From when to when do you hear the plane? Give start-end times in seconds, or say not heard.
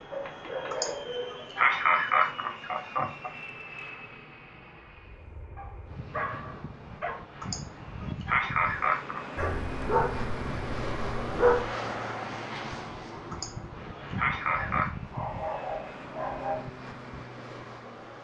0.0-18.1.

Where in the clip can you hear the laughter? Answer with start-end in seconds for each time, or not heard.
0.7-3.3, 7.4-9.2, 13.3-14.9.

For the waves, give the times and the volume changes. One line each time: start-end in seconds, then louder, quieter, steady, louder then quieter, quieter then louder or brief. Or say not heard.
not heard.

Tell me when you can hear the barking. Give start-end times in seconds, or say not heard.
0.1-1.5, 5.5-7.2, 9.3-11.7, 14.4-16.6.